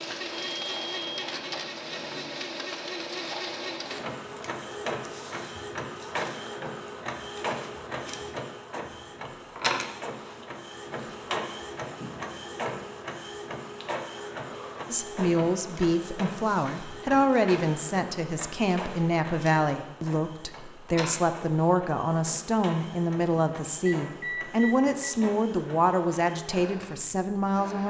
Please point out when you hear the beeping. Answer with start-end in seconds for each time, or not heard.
0.3-1.2, 23.9-25.1.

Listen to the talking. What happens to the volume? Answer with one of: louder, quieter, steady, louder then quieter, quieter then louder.
steady.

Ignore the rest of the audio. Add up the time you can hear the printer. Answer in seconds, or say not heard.
28 s.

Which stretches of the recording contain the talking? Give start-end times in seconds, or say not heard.
14.8-27.8.